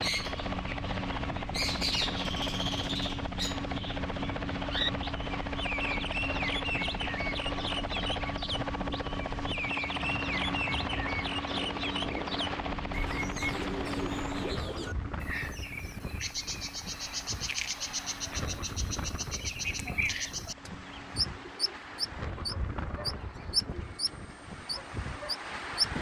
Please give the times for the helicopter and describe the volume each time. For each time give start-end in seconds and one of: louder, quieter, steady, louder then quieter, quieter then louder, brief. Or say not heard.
0.0-25.6 quieter.